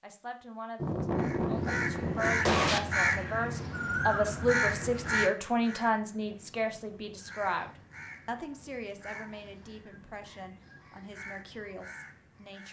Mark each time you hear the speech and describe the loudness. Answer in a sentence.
You can hear the speech from 0.0 to 12.6 s, getting louder then quieter.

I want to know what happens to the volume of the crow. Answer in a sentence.
The loudness of the crow goes down.